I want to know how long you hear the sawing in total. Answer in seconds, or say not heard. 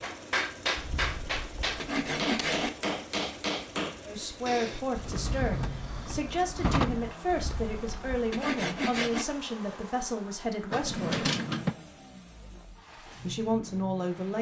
4 s.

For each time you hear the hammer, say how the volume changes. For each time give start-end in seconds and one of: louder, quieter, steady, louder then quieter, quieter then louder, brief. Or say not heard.
0.0-4.8 steady.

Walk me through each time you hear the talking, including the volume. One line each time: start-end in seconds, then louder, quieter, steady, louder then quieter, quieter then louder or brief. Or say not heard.
4.0-11.2 steady
13.2-14.3 brief.